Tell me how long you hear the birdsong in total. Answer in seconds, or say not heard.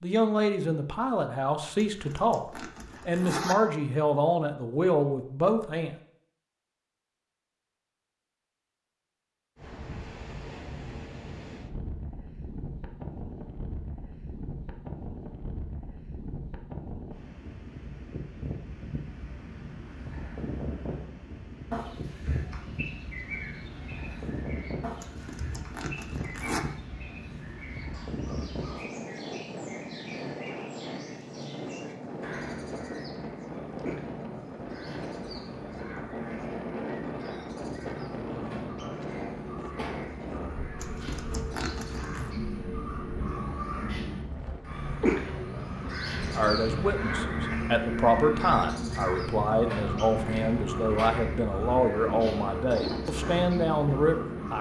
33 s.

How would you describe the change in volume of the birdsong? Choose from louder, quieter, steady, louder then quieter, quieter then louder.
louder.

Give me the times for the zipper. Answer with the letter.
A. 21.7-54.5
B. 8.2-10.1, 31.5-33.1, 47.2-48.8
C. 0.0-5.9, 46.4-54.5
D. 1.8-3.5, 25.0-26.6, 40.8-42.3
D.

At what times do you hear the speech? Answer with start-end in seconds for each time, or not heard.
0.0-5.9, 46.4-54.5.